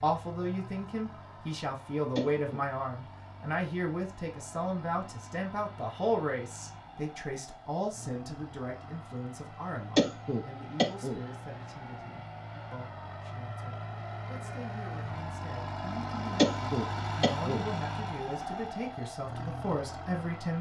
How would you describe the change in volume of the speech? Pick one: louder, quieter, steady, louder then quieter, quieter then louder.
quieter then louder.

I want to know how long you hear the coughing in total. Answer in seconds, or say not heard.
3 s.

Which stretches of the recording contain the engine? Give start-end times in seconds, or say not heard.
0.0-20.5.